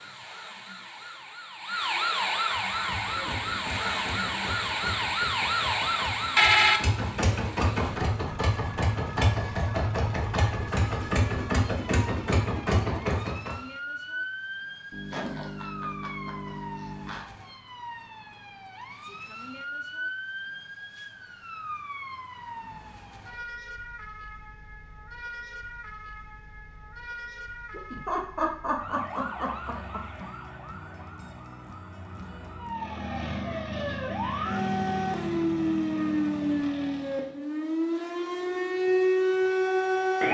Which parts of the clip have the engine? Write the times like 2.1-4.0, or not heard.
2.5-13.6, 32.7-37.4.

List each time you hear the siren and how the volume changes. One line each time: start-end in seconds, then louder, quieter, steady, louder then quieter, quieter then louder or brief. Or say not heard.
0.0-40.2 quieter then louder.